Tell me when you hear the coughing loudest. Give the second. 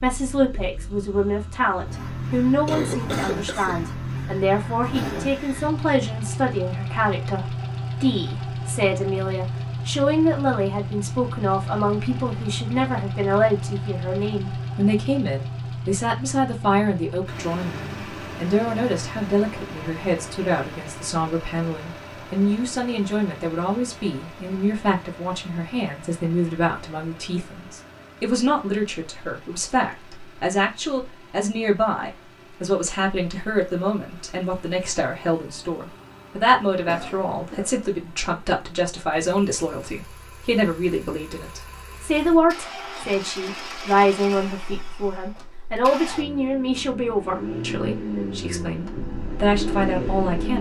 3 s.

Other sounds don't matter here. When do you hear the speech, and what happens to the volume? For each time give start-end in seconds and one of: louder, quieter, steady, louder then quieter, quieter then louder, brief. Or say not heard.
0.0-50.5 steady.